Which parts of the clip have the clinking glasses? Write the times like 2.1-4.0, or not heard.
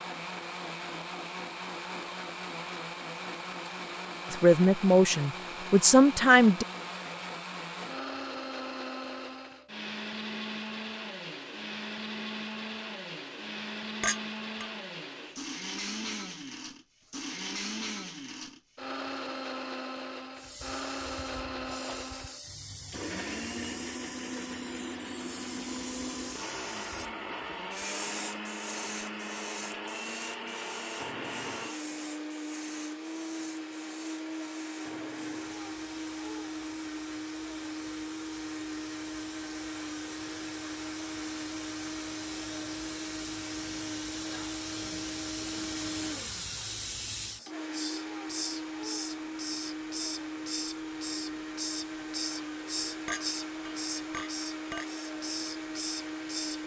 14.0-14.7, 53.0-54.9.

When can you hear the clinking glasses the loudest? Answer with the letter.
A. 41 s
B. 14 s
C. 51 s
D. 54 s
B.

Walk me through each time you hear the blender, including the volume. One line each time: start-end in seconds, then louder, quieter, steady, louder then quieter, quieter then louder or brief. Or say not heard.
0.0-56.6 steady.